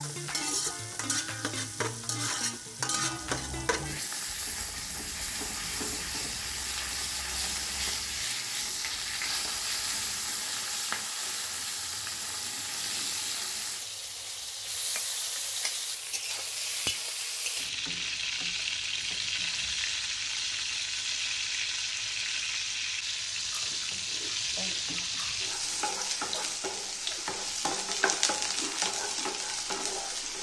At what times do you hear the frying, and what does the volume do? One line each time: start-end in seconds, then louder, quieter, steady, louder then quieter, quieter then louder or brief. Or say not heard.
0.0-30.3 steady.